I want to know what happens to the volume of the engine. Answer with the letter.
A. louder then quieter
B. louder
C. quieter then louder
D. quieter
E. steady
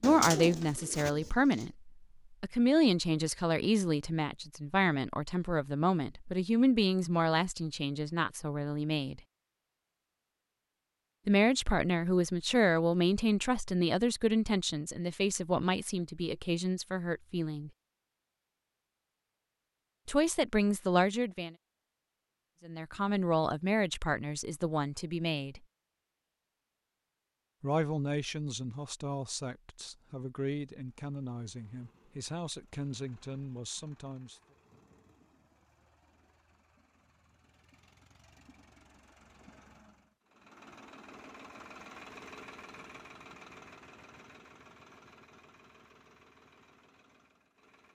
A.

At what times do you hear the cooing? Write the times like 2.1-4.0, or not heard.
0.0-1.6.